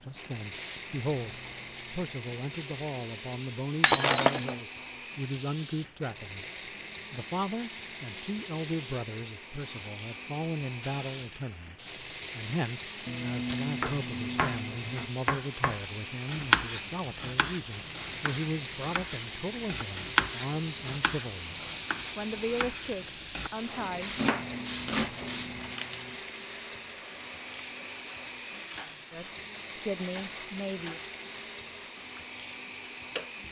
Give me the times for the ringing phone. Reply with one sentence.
The ringing phone can be heard from 3.9 to 4.7 s, from 13.1 to 15.1 s and from 24.1 to 26.2 s.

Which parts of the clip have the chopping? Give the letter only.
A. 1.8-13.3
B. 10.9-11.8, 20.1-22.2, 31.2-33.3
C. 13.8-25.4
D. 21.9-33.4
C.